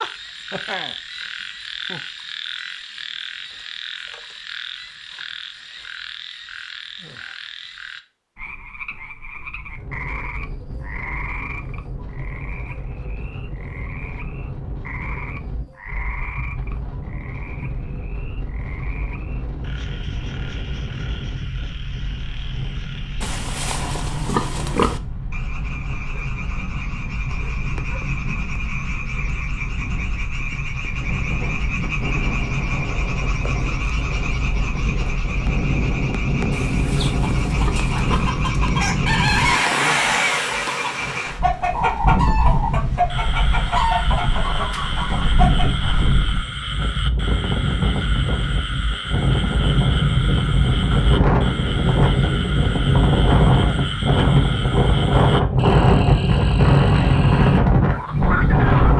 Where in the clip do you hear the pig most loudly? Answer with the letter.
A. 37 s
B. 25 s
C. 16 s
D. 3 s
B.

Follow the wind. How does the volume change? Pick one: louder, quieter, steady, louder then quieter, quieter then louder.
louder.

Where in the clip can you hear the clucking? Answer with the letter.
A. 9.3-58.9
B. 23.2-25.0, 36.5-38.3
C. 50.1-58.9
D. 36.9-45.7
D.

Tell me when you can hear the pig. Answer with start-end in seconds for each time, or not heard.
23.2-25.0, 36.5-38.3.